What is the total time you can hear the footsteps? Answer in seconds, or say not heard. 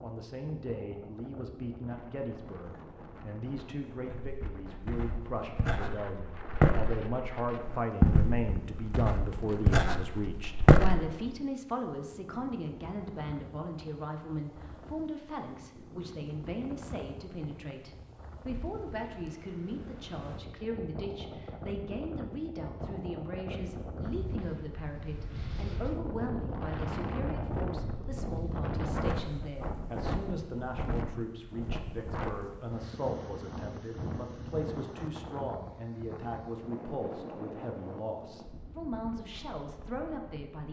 7 s.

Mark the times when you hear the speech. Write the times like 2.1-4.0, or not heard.
0.0-40.6.